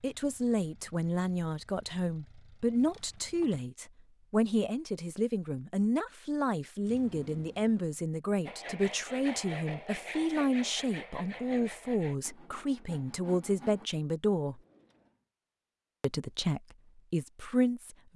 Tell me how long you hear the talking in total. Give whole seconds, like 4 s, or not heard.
17 s.